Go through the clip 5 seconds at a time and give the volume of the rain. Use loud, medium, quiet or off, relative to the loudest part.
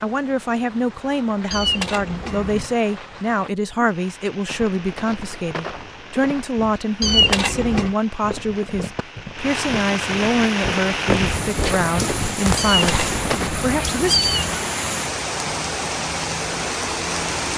quiet, medium, loud, loud.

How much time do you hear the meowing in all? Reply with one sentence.
You can hear the meowing for 4 seconds altogether.